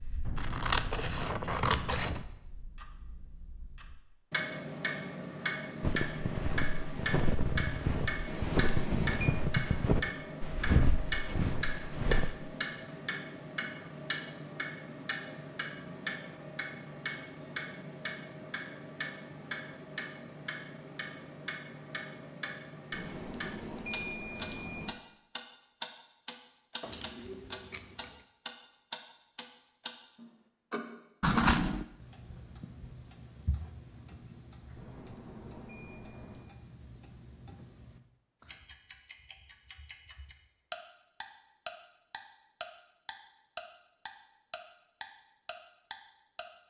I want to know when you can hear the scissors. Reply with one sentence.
You can hear the scissors from 0.2 to 2.2 s, from 26.8 to 28.2 s and from 31.2 to 31.9 s.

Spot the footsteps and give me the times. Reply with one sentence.
The footsteps can be heard from 5.8 to 12.3 s.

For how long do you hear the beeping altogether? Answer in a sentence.
You can hear the beeping for 5 seconds altogether.